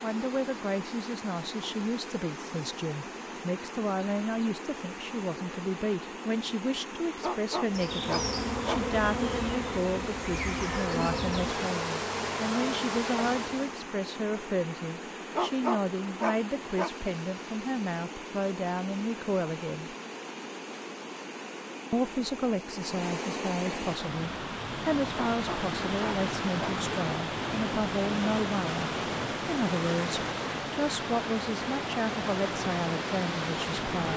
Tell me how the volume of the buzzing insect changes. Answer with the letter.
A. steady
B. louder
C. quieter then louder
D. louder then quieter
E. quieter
A.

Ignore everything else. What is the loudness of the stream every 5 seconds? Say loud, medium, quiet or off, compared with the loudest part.
medium, medium, medium, medium, medium, loud, loud.